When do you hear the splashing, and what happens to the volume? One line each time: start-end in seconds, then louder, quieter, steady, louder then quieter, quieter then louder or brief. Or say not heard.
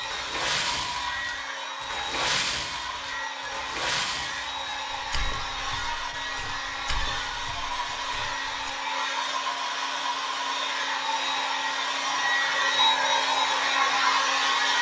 0.0-8.7 quieter.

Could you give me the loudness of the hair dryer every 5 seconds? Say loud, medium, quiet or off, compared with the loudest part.
medium, medium, loud.